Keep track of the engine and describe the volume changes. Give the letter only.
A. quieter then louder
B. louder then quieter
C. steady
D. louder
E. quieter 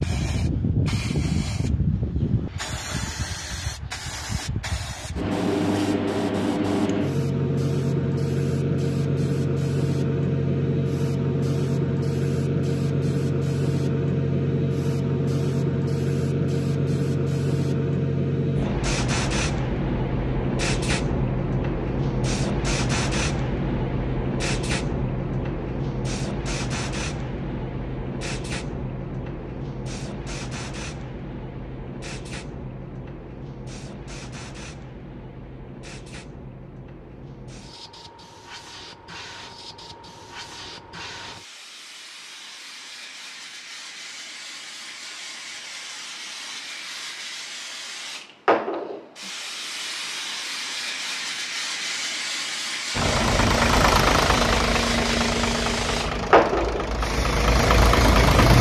A.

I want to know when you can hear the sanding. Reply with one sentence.
You can't hear the sanding here.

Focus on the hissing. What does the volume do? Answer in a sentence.
The volume of the hissing goes down, then up.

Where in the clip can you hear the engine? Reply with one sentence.
You can hear the engine from 52.9 to 58.5 s.